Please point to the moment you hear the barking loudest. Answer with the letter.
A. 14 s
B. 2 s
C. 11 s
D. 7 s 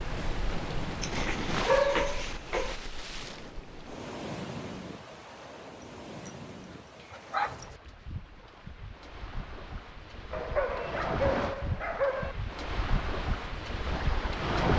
B.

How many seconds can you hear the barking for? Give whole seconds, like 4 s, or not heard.
6 s.